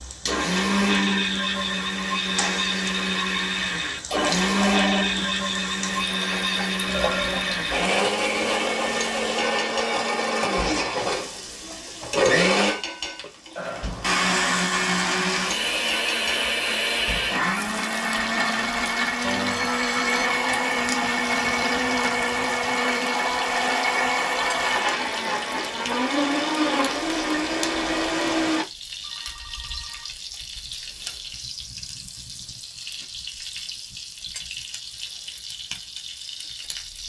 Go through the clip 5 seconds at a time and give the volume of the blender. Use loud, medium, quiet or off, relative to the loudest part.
loud, loud, loud, loud, loud, loud, off, off.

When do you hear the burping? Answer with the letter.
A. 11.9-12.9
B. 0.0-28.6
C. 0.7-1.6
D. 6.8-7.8
D.